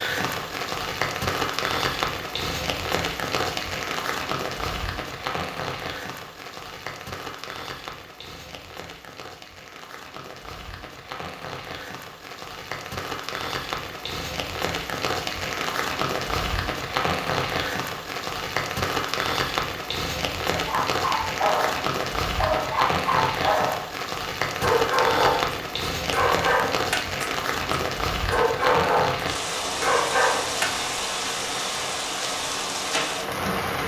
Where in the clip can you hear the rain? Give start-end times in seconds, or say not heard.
0.0-33.8.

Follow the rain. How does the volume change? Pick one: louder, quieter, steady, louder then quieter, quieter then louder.
quieter then louder.